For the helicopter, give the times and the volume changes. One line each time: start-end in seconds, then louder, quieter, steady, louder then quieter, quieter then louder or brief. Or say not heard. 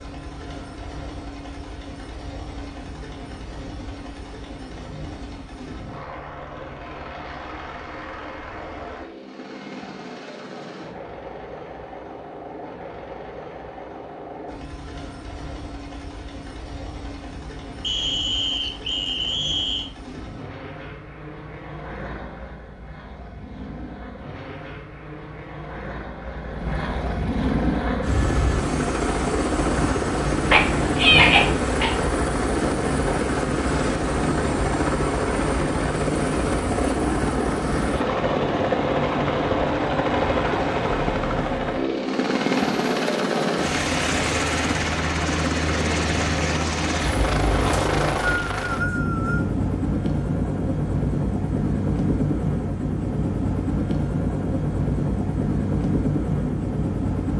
0.0-57.3 louder.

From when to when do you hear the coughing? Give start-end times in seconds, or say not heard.
30.5-31.9.